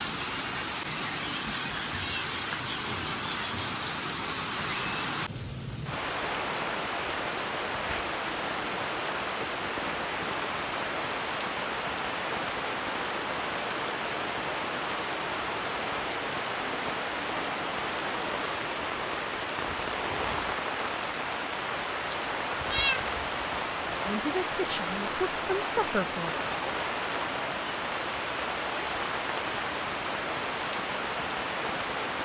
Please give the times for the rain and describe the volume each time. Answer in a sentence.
The rain can be heard from 0.0 to 32.1 s, at a steady volume.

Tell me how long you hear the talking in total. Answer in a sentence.
You can hear the talking for 2 seconds altogether.